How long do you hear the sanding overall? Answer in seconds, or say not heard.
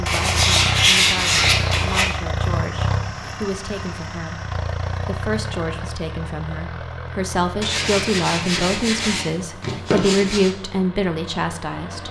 5 s.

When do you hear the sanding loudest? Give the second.
1 s.